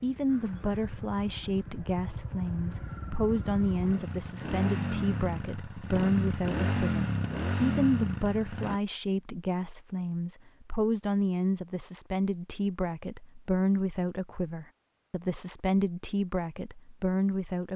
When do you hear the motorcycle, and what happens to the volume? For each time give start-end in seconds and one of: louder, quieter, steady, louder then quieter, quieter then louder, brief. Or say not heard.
0.0-8.8 louder.